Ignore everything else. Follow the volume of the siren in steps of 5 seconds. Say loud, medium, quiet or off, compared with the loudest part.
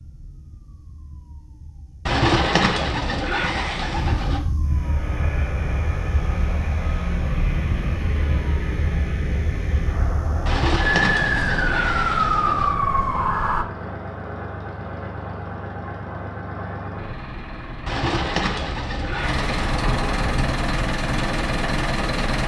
quiet, medium, loud, off, off.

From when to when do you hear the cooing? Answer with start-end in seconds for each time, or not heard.
2.0-4.5, 10.4-12.8, 17.9-19.9.